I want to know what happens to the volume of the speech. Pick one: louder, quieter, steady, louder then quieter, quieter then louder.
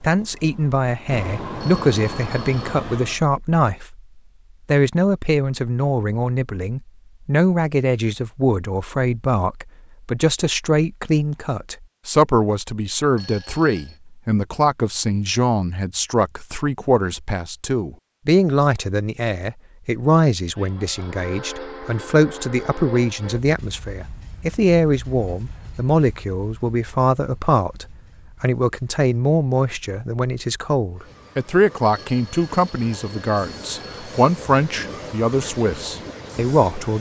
steady.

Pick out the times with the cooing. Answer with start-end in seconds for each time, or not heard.
not heard.